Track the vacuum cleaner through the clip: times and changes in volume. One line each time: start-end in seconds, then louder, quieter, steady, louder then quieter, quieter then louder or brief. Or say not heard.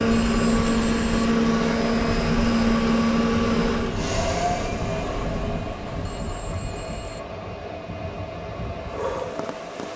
0.0-9.9 quieter.